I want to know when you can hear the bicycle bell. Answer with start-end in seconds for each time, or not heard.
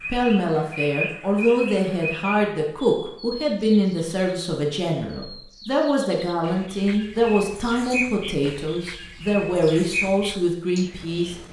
not heard.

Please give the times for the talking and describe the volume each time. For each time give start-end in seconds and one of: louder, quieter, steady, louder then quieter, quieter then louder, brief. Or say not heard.
0.1-11.3 steady.